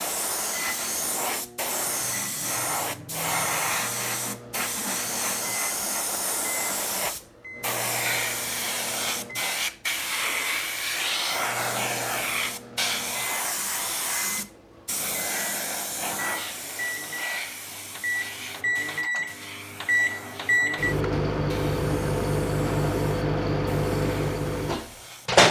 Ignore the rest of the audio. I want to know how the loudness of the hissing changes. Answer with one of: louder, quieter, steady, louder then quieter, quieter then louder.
quieter.